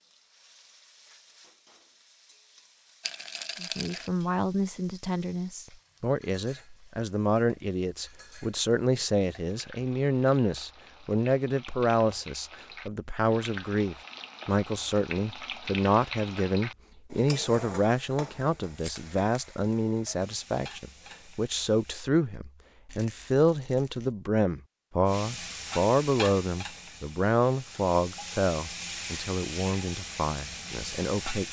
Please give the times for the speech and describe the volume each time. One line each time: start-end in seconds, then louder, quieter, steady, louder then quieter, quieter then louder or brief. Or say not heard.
3.6-31.4 steady.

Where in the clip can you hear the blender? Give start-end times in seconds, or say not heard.
not heard.